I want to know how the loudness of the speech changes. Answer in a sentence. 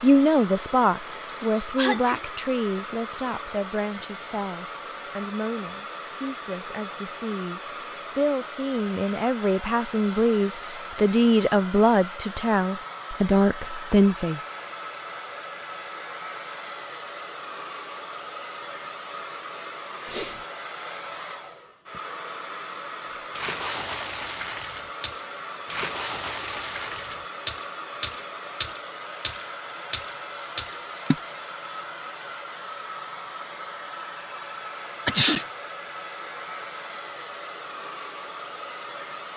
The loudness of the speech goes down, then up.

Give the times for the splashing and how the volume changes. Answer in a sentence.
The splashing can be heard from 23.1 to 31.2 s, at a steady volume.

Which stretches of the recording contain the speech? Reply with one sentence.
The speech can be heard from 0.0 to 14.4 s.